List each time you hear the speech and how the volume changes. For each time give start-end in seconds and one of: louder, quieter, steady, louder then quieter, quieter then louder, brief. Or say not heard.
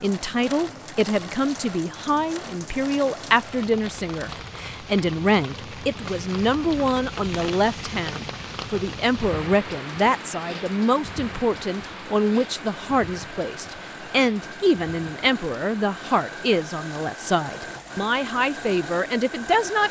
0.0-19.8 steady.